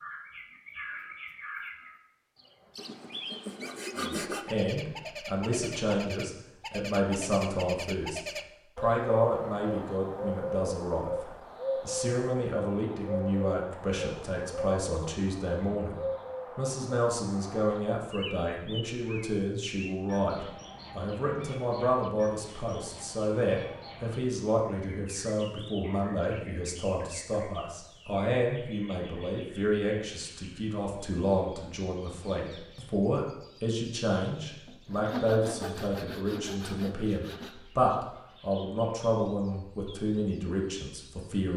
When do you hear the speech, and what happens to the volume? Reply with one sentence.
You can hear the speech from 4.0 to 15.9 s, at a steady volume; and from 16.6 to 41.5 s, at a steady volume.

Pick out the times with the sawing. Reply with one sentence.
You can hear the sawing from 2.8 to 4.5 s and from 34.6 to 37.5 s.